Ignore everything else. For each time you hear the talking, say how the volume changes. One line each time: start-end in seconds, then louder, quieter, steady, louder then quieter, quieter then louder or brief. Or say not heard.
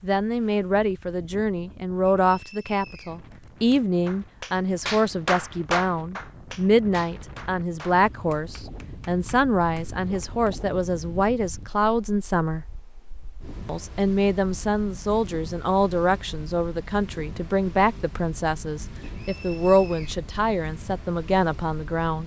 0.0-12.7 steady
13.7-22.2 steady.